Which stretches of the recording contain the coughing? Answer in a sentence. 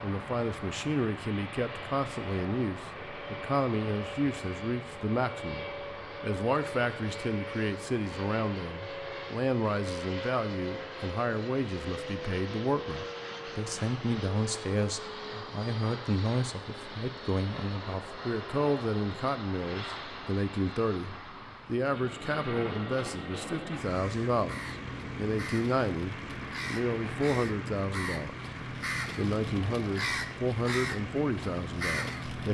You can't hear the coughing here.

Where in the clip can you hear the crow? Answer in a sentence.
You can hear the crow from 23.9 to 32.4 s.